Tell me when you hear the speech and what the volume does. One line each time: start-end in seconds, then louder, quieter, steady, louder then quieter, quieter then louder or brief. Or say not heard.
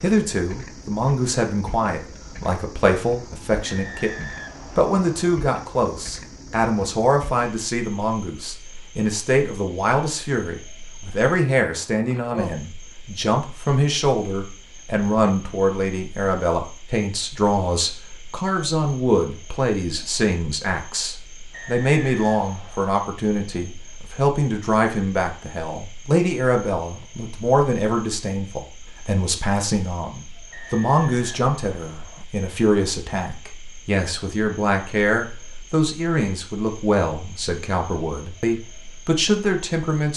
0.0-40.1 steady.